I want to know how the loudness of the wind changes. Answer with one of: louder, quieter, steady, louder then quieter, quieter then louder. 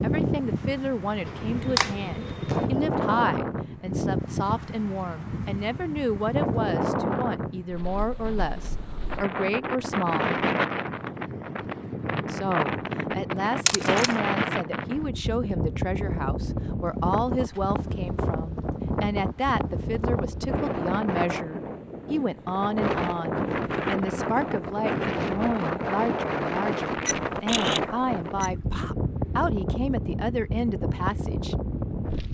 steady.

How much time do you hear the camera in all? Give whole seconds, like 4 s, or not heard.
3 s.